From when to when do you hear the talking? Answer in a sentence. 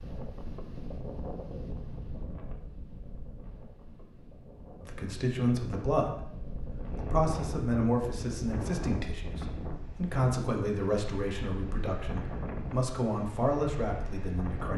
You can hear the talking from 4.8 to 14.7 s.